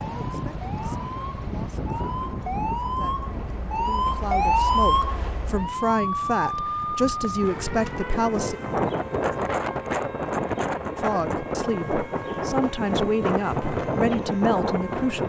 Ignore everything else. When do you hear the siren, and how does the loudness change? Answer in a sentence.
The siren can be heard from 0.0 to 15.2 s, getting louder then quieter.